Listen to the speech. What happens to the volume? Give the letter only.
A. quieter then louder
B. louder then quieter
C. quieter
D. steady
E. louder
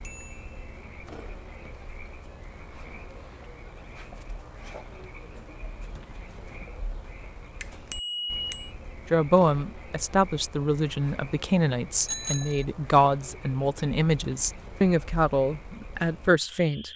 D.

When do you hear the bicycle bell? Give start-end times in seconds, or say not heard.
0.0-0.6, 7.6-8.7, 12.1-12.7.